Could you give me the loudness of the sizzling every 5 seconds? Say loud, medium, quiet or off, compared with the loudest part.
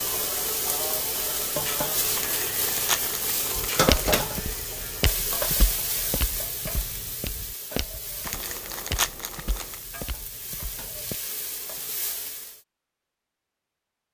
loud, medium, medium.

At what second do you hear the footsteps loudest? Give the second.
4 s.